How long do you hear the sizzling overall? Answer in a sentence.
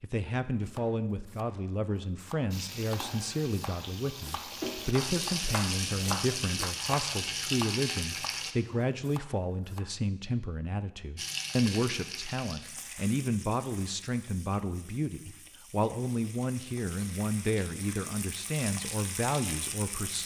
You can hear the sizzling for 15 seconds altogether.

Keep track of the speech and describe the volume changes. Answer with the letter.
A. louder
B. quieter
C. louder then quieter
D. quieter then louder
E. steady
E.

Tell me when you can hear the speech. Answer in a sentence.
The speech can be heard from 0.0 to 20.2 s.